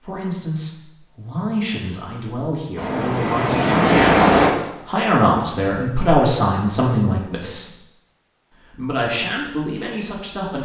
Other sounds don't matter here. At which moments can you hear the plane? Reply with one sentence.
You can hear the plane from 2.8 to 4.5 s.